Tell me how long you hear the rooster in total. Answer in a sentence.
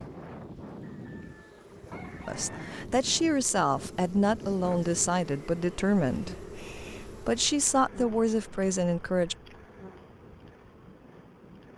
The rooster can be heard for 2 seconds in total.